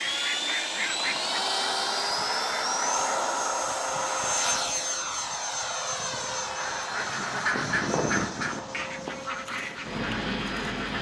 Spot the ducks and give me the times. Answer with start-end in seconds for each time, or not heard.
0.0-3.0, 6.4-10.9.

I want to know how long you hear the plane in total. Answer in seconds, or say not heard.
11 s.